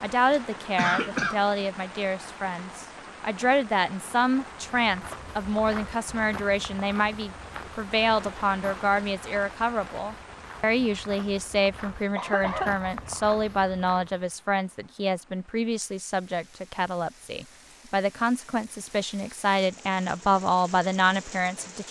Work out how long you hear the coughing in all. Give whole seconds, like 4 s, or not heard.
2 s.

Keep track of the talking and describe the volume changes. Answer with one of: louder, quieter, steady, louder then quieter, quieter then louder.
steady.